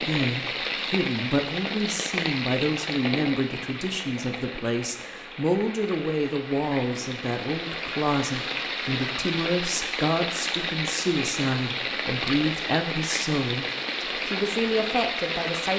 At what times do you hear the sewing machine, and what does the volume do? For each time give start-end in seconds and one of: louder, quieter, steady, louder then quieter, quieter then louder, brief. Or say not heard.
not heard.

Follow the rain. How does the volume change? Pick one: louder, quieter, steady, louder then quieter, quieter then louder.
quieter then louder.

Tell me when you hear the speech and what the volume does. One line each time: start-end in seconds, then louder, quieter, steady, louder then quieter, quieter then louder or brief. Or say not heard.
0.0-15.7 steady.